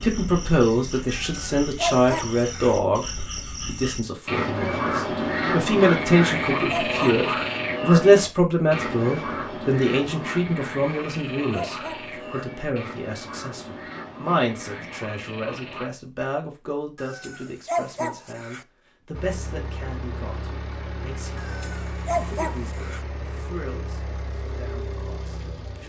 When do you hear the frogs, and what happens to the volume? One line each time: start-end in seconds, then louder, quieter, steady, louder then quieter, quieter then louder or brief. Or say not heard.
0.0-15.9 louder then quieter.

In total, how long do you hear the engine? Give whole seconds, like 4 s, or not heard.
8 s.